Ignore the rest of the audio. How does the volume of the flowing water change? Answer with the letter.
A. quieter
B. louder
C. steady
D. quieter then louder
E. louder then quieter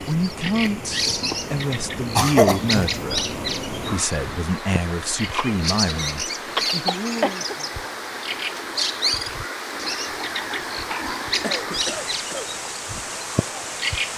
C.